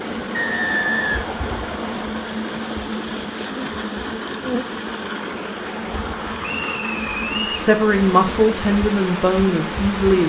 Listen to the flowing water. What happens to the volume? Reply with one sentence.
The loudness of the flowing water stays about the same.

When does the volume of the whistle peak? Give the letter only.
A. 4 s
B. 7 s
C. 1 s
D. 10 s
C.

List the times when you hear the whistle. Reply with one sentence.
You can hear the whistle from 0.3 to 2.0 s and from 6.4 to 7.7 s.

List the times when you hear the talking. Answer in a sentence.
You can hear the talking from 7.5 to 10.2 s.